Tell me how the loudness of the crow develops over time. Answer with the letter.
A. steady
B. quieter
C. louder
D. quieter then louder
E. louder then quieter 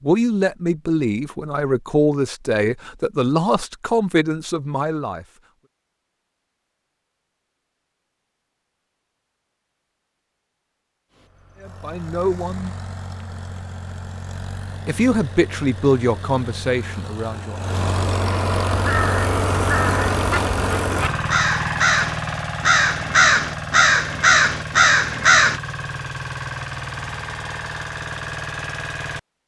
C.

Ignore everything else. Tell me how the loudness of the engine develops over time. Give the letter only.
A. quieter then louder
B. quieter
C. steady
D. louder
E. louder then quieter
E.